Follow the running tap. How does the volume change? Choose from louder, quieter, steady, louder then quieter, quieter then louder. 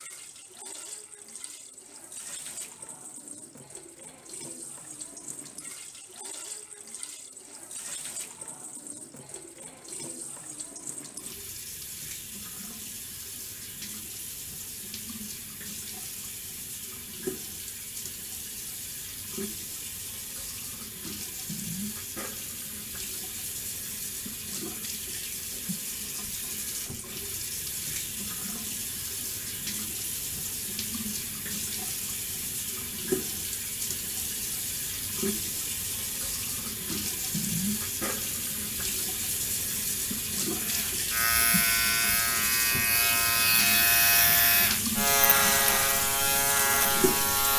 louder.